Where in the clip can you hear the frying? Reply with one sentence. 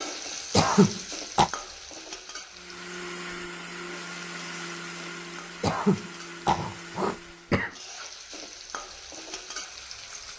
You can hear the frying from 0.0 to 10.3 s.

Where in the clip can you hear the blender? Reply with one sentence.
You can hear the blender from 2.5 to 7.7 s.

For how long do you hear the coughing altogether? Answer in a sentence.
You can hear the coughing for 3 seconds altogether.